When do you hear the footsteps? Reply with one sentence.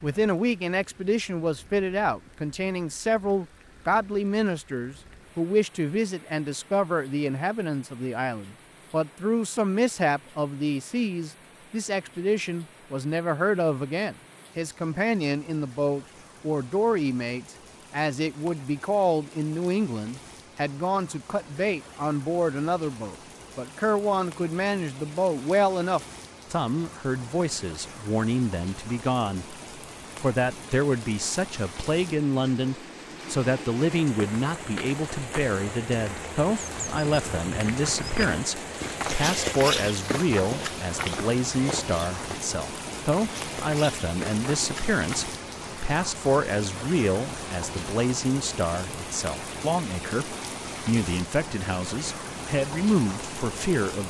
You can hear the footsteps from 34.0 to 45.0 s.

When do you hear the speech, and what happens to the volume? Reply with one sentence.
You can hear the speech from 0.0 to 29.6 s, at a steady volume; and from 30.2 to 54.0 s, at a steady volume.